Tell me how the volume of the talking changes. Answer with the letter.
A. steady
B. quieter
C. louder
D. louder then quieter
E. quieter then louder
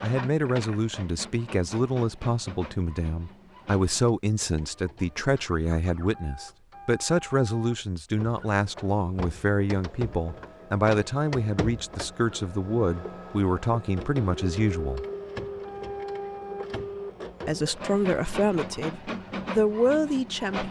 A.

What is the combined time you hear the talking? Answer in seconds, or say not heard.
18 s.